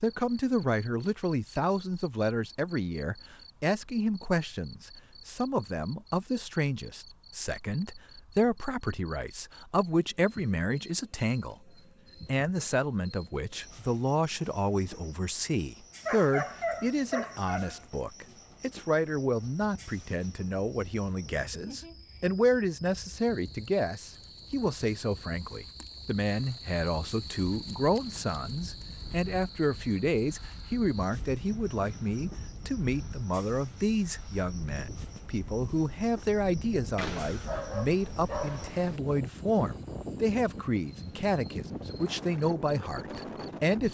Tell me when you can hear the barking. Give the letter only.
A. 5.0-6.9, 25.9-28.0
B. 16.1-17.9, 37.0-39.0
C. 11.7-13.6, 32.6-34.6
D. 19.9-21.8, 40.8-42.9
B.